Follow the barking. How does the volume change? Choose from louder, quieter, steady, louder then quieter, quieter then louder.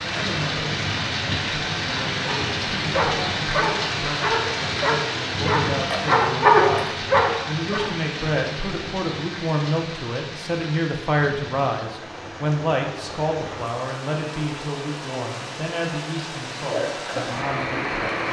louder.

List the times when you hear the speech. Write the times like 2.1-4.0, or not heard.
0.0-18.2.